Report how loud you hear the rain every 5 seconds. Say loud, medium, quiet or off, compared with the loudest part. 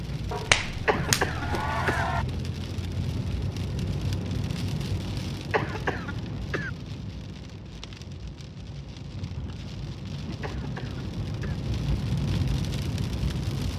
loud, medium, loud.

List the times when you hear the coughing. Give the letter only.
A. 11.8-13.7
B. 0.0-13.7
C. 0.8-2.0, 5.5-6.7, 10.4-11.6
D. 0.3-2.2
C.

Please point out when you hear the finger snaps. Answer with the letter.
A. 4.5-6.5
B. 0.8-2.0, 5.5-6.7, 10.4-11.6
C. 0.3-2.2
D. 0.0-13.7
C.